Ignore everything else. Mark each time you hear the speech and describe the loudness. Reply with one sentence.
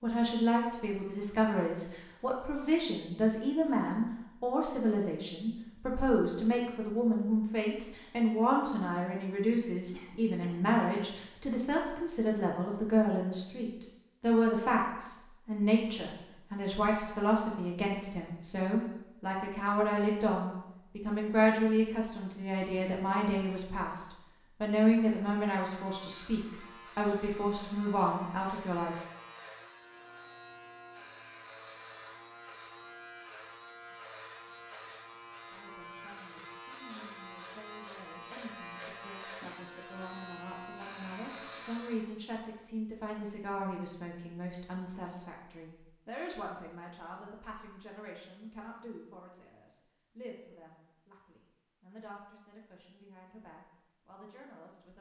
You can hear the speech from 0.0 to 28.9 s, at a steady volume; and from 35.5 to 54.9 s, getting louder then quieter.